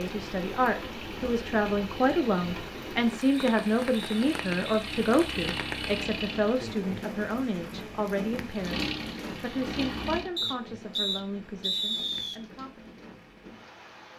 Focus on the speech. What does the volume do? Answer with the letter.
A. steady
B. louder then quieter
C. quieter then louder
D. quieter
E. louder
D.